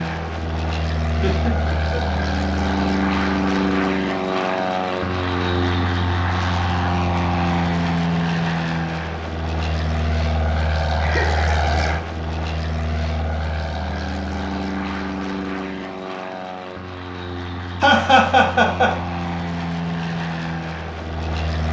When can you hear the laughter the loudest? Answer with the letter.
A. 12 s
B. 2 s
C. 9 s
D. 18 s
D.